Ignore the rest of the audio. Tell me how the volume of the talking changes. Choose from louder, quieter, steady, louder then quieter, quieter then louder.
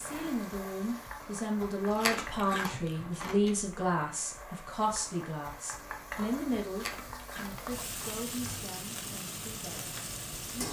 quieter.